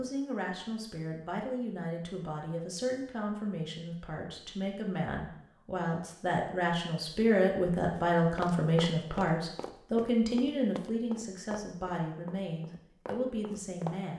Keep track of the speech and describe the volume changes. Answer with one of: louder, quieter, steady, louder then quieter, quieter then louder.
louder then quieter.